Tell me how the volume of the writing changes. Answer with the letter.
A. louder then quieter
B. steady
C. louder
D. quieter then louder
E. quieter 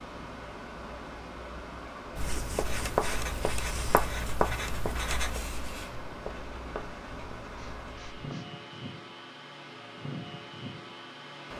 E.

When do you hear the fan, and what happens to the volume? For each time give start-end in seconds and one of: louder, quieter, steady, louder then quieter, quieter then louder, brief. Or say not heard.
0.0-11.5 steady.